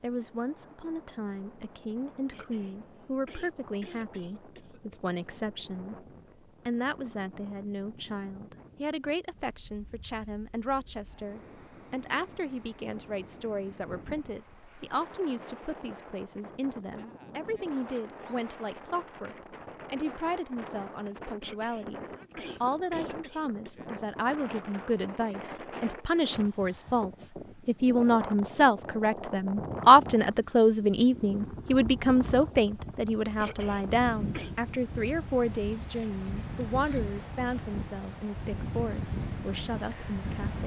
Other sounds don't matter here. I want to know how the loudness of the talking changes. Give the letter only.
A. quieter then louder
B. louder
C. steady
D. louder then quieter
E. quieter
D.